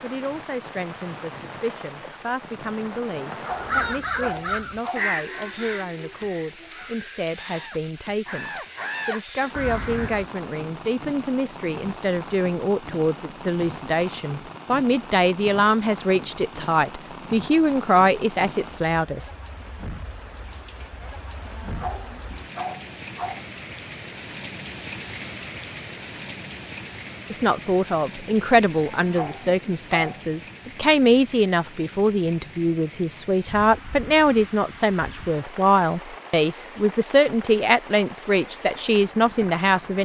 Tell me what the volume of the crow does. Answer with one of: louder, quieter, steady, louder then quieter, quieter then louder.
quieter then louder.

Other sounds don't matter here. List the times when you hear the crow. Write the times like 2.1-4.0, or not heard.
3.4-10.2.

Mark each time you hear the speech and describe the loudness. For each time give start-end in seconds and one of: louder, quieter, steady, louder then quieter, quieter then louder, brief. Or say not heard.
0.0-19.3 louder
27.3-39.9 steady.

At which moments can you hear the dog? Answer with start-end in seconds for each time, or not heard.
3.3-5.1, 21.4-23.4, 28.9-30.2.